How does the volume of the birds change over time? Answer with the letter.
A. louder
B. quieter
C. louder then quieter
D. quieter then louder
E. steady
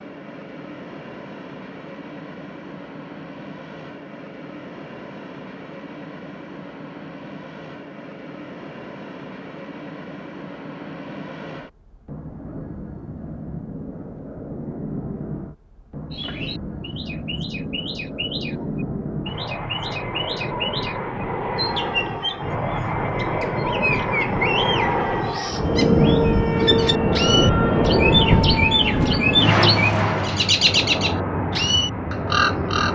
A.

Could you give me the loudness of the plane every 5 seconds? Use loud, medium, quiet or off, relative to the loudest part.
quiet, quiet, quiet, quiet, medium, loud, medium.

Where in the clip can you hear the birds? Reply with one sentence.
You can hear the birds from 16.1 to 32.9 s.